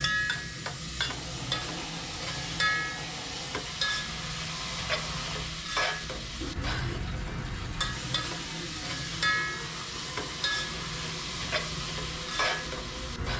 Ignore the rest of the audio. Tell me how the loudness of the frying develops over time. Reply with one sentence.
The loudness of the frying stays about the same.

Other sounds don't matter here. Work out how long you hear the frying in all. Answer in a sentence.
The frying can be heard for 13 seconds in total.